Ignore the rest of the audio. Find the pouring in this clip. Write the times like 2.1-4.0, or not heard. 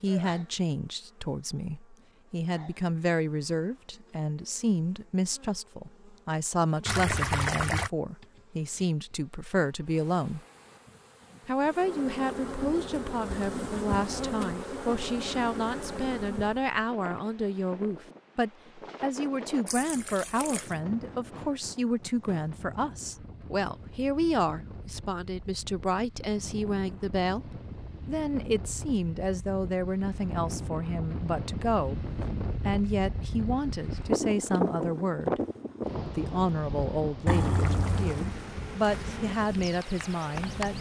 6.8-7.9, 19.6-20.8, 37.2-38.4.